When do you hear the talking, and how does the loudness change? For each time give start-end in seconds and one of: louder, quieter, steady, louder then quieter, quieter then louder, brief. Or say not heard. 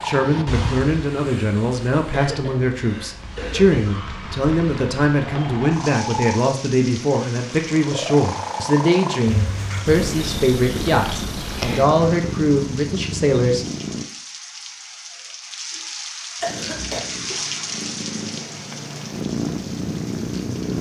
0.0-13.7 steady.